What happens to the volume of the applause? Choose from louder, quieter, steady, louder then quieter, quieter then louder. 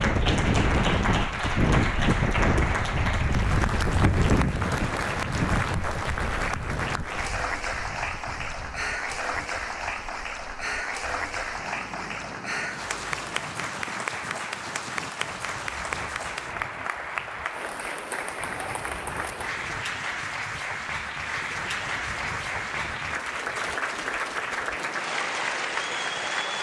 steady.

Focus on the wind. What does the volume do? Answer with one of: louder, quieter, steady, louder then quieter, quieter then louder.
quieter.